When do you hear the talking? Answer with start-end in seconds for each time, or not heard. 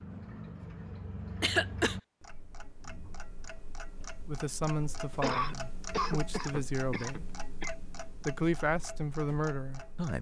4.2-7.3, 8.2-10.1.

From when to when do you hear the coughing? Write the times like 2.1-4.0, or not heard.
1.4-1.9, 5.2-7.8.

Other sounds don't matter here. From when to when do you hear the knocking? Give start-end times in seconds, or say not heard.
not heard.